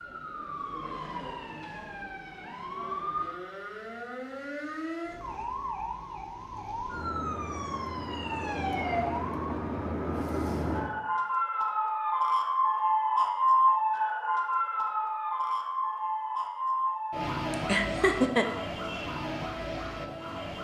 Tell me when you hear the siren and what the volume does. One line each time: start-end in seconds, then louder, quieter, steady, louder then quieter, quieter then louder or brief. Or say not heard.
0.0-20.5 louder then quieter.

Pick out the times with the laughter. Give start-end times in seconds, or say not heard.
17.5-18.4.